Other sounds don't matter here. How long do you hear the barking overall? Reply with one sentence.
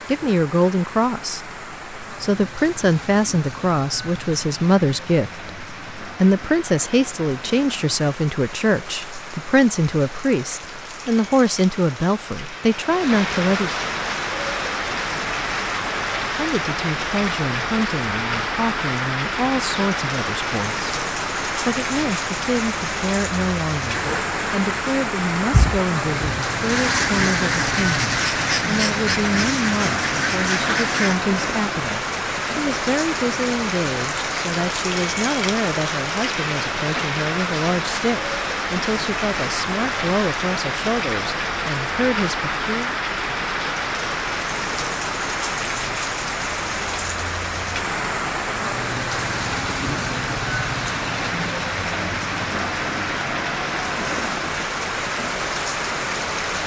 The barking can't be heard in this clip.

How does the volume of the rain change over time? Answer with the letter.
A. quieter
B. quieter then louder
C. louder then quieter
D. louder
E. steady
D.